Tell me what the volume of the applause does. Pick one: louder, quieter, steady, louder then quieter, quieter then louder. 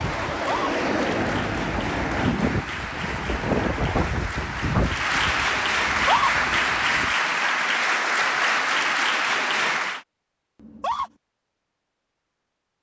louder.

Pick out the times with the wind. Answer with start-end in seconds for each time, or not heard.
0.0-7.2.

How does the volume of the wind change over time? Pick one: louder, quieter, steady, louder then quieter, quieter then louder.
quieter.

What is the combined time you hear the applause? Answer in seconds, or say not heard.
10 s.